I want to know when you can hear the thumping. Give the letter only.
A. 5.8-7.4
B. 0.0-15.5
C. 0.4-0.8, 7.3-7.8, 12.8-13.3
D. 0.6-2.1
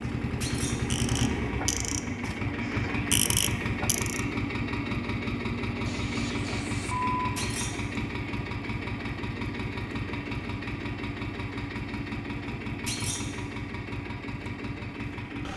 C.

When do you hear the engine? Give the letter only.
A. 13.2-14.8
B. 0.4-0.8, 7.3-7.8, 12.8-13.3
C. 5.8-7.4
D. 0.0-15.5
D.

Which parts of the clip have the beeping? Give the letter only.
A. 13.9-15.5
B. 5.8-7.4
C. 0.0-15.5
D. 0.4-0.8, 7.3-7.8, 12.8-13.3
B.